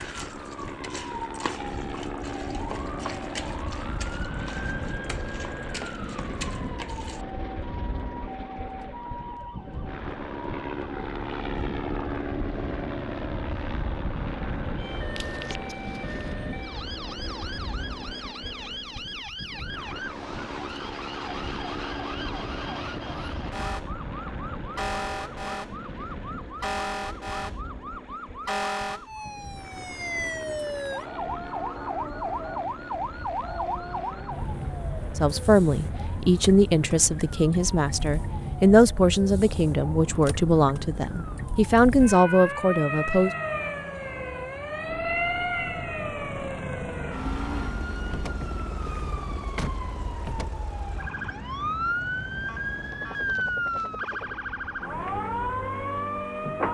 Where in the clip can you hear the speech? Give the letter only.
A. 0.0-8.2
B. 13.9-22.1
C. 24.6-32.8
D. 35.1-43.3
D.